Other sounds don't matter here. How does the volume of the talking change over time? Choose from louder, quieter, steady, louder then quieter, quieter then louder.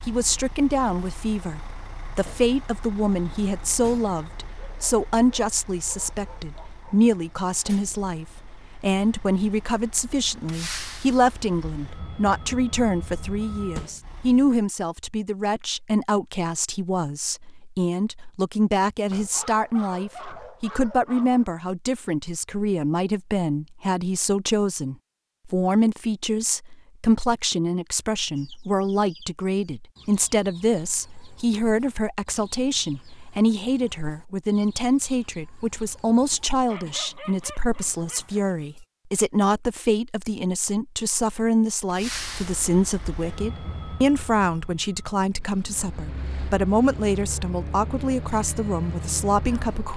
steady.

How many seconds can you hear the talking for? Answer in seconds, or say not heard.
50 s.